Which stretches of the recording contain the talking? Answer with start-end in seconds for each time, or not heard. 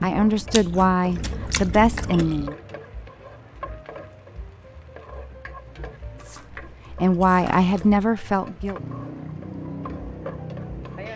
0.0-2.5, 6.9-8.8.